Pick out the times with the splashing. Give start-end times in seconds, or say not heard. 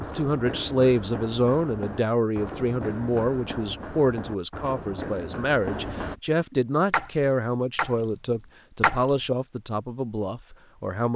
6.9-9.2.